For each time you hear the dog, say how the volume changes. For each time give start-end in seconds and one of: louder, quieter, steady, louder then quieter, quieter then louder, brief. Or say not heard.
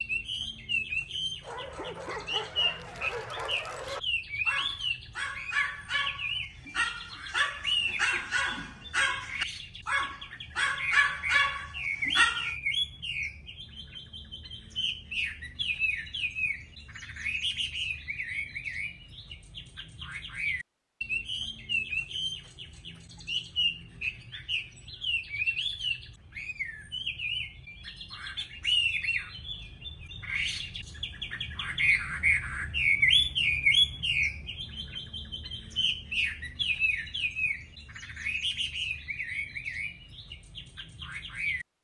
1.4-12.5 louder.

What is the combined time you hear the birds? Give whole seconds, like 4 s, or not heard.
42 s.